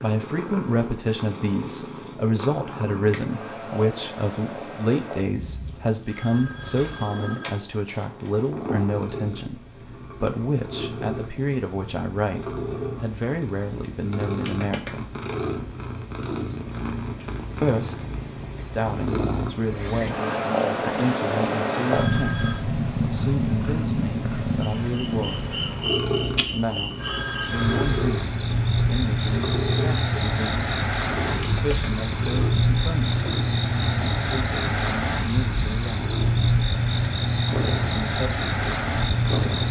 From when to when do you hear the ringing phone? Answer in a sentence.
You can hear the ringing phone from 5.9 to 7.6 s, from 21.8 to 22.6 s and from 26.8 to 28.1 s.